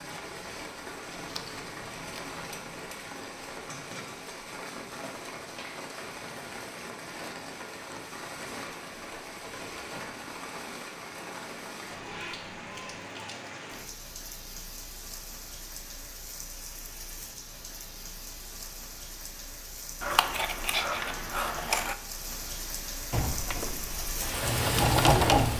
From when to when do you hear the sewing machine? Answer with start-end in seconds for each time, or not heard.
23.1-25.5.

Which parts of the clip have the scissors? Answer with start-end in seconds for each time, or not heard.
1.1-2.8, 20.0-21.9.